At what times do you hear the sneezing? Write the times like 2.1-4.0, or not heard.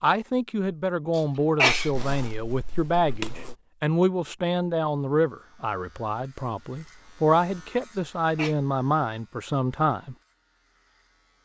1.1-1.9, 8.0-8.6.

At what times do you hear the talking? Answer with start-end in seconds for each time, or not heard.
0.0-10.2.